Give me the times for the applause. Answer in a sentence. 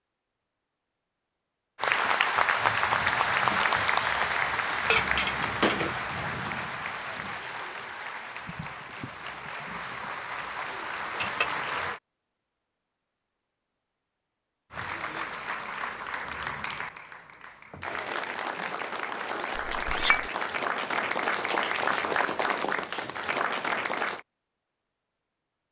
The applause can be heard from 1.8 to 12.0 s and from 14.7 to 24.2 s.